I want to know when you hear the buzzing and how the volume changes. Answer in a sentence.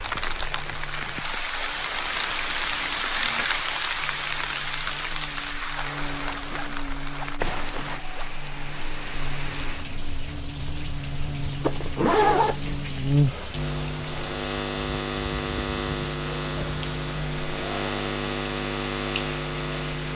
The buzzing can be heard from 0.2 to 20.1 s, getting louder.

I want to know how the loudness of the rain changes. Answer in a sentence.
The loudness of the rain goes down.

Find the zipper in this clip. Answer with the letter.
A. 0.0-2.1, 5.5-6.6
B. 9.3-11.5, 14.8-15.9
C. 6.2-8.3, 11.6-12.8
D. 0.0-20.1
C.